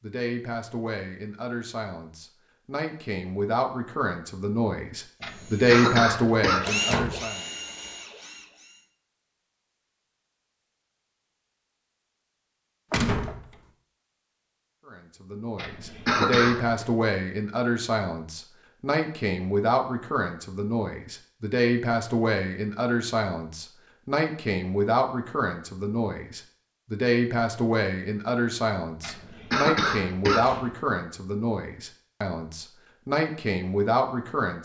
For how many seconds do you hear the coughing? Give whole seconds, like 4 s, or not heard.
4 s.